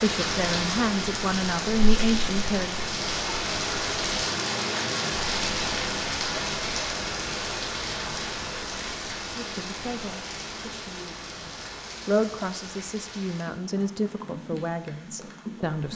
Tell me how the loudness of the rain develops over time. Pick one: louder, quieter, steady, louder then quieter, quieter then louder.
quieter.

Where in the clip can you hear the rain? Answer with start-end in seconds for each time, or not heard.
0.0-15.9.